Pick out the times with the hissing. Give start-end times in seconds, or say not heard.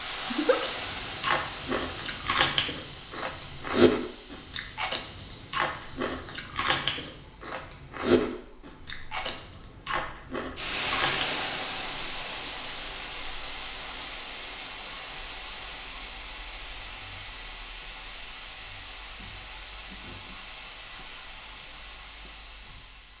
0.0-23.1.